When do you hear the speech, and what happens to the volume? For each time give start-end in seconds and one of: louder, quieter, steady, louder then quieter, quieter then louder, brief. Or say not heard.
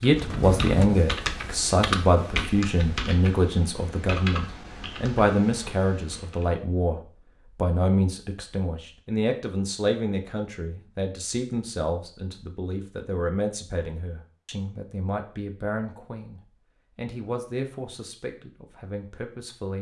0.0-19.7 quieter.